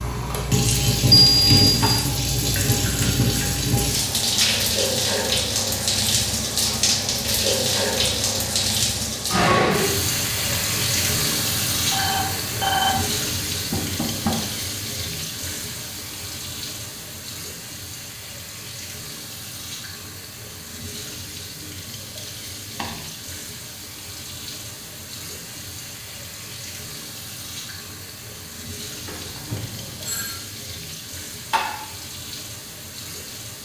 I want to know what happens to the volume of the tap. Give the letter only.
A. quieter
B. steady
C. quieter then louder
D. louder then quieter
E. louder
A.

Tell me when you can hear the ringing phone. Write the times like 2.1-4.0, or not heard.
1.2-1.6, 11.9-12.9, 29.1-30.4.